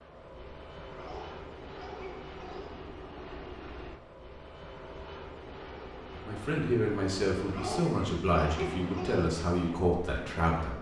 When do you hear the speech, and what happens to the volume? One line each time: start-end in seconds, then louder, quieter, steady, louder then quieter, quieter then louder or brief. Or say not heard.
6.1-10.7 steady.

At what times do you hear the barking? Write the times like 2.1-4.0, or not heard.
0.9-2.8, 7.5-9.3.